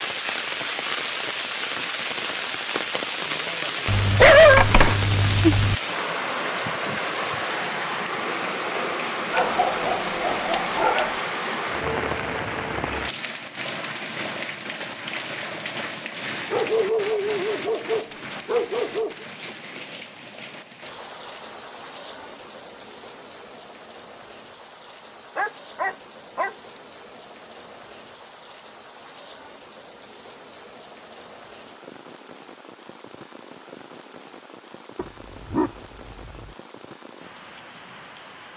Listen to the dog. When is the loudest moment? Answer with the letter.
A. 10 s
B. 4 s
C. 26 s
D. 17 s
B.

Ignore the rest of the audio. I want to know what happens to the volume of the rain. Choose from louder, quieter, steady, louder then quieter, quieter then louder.
quieter.